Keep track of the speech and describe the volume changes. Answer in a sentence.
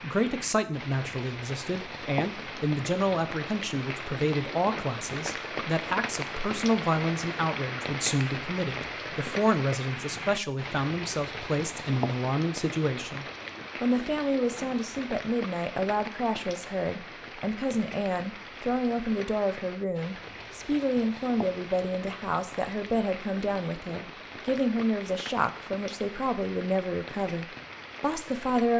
The loudness of the speech stays about the same.